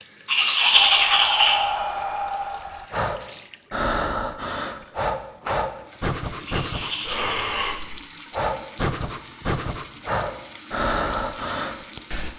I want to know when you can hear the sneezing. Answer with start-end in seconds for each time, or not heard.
not heard.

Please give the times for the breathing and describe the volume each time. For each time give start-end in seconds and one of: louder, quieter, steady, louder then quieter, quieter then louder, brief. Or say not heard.
0.8-12.3 steady.